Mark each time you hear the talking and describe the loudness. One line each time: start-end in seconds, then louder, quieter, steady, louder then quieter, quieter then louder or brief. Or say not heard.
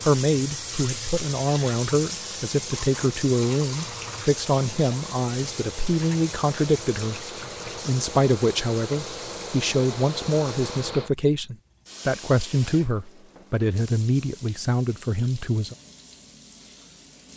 0.0-7.2 steady
7.8-15.8 steady.